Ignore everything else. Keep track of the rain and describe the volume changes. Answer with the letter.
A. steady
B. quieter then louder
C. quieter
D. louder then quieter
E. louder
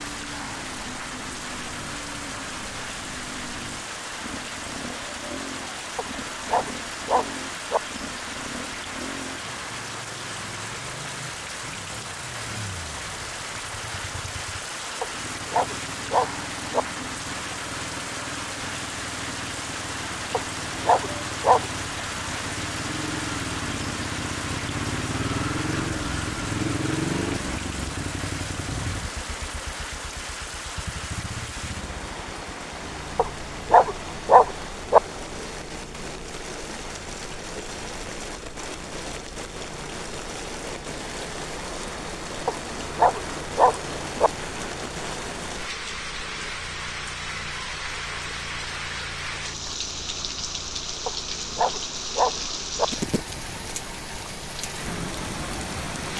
A.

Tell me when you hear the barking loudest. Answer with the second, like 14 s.
34 s.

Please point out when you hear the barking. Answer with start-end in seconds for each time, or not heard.
6.0-7.8, 15.0-16.8, 20.3-21.6, 33.1-35.0, 42.5-44.3, 51.0-52.9.